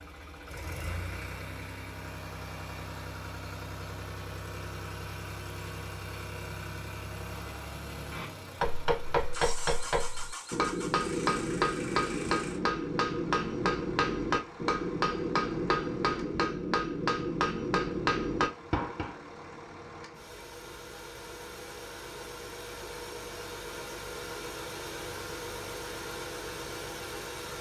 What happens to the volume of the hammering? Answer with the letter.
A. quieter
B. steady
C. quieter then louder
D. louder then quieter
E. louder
B.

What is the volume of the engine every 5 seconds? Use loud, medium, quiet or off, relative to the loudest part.
loud, loud, medium, medium, loud, loud.